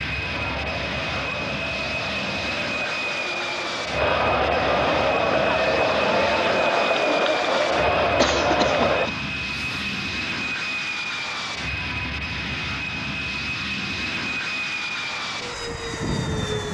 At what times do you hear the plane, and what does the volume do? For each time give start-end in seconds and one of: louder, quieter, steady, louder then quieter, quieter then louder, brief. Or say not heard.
0.0-16.7 steady.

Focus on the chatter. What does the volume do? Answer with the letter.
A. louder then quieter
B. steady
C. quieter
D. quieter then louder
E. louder
E.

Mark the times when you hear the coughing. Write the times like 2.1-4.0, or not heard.
8.2-9.9.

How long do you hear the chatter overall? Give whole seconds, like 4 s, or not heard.
9 s.